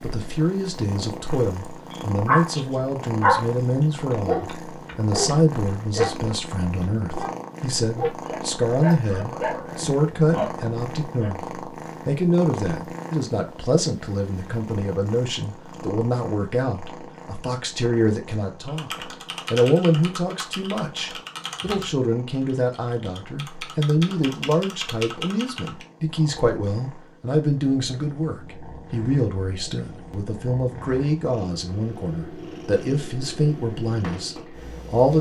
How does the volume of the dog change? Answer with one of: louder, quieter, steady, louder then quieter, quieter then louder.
quieter.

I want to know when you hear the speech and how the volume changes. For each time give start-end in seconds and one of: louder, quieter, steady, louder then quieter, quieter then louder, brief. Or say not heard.
0.0-35.1 steady.